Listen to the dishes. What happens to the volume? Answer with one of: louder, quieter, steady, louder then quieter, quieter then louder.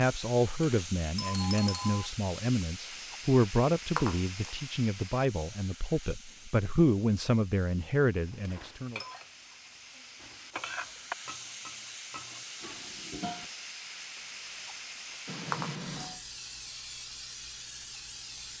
louder then quieter.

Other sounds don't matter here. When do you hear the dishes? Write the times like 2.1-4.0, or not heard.
8.5-13.5.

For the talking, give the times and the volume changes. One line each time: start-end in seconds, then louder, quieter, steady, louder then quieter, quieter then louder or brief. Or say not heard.
0.0-9.0 steady.